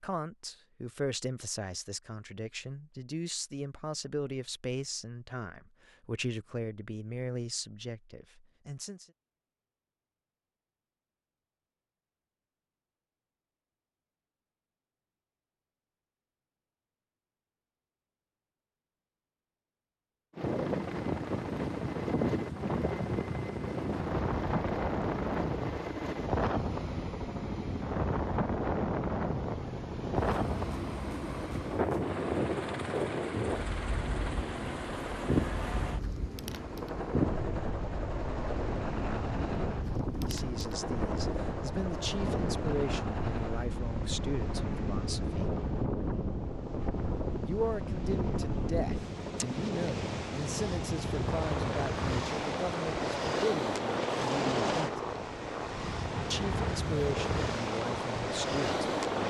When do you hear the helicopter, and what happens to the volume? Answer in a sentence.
You can hear the helicopter from 20.3 to 59.2 s, at a steady volume.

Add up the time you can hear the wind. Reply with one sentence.
The wind can be heard for 39 seconds in total.